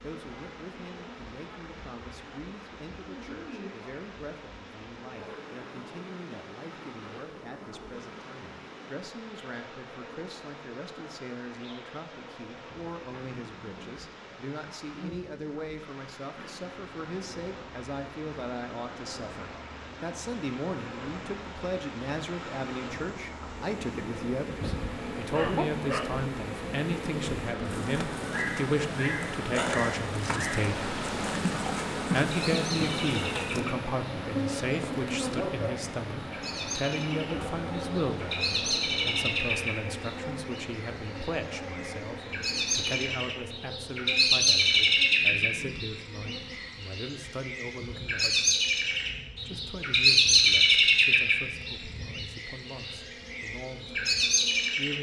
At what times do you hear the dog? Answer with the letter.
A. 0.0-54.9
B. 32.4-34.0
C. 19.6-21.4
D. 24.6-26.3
D.